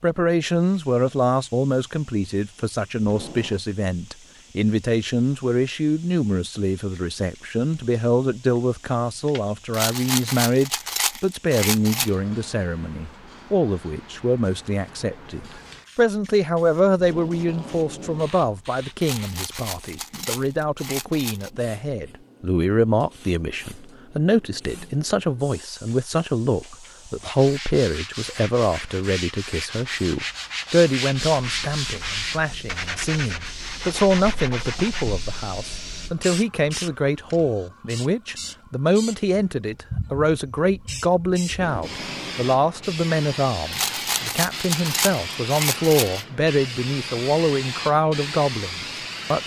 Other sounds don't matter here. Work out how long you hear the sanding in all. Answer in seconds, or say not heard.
8 s.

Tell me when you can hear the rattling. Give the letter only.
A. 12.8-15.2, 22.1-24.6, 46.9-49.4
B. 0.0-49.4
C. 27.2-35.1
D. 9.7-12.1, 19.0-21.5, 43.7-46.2
D.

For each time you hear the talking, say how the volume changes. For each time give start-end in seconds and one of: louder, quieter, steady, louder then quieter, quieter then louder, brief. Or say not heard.
0.0-49.4 steady.